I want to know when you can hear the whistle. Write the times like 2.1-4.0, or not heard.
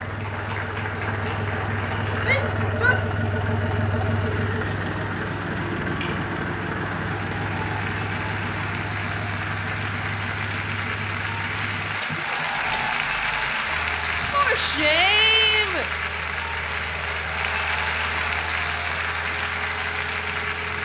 not heard.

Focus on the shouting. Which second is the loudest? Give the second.
15 s.